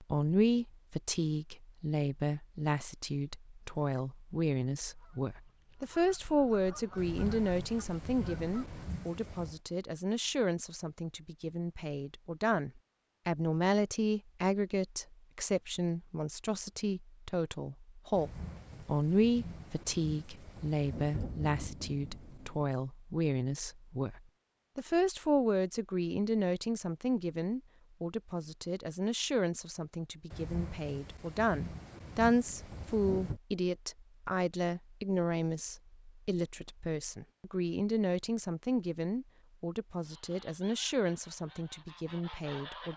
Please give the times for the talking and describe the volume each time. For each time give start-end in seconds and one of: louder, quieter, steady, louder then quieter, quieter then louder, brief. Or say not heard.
0.0-42.9 steady.